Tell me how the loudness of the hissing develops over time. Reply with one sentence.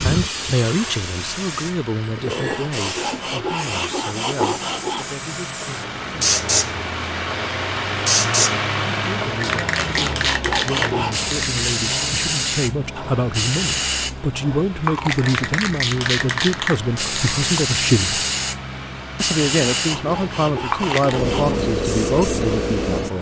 The volume of the hissing goes up.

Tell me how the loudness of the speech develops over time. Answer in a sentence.
The loudness of the speech goes down, then up.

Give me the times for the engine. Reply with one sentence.
The engine can be heard from 0.1 to 23.1 s.